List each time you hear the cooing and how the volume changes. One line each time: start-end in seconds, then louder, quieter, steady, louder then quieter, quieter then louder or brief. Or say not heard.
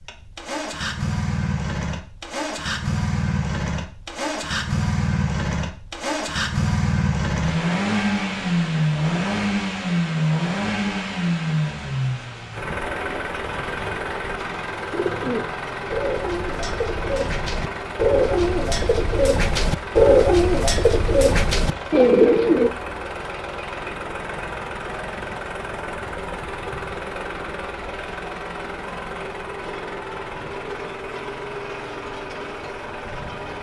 14.9-22.7 louder.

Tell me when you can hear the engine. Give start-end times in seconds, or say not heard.
0.0-33.5.